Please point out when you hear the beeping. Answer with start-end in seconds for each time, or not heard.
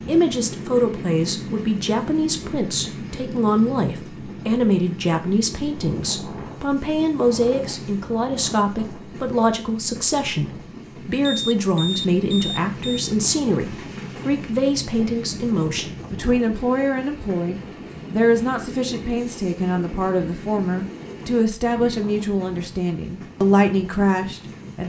11.2-13.2.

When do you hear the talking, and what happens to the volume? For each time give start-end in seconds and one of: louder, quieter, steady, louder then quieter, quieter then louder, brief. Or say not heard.
0.1-24.8 steady.